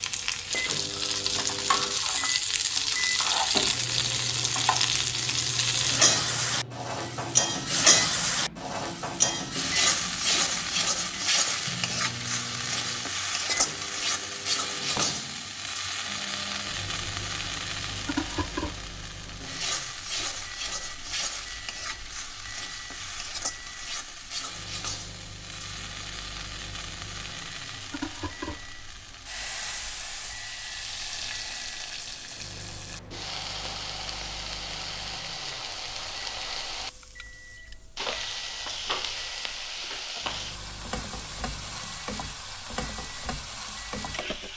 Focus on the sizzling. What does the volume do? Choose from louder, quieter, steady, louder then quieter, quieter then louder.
quieter.